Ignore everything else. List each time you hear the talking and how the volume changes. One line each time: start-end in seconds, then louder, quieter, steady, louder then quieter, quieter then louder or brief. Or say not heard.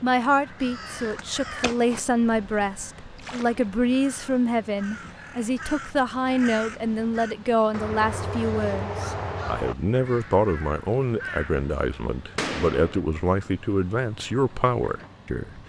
0.0-15.6 steady.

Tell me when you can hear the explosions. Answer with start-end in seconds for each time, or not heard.
12.3-13.0.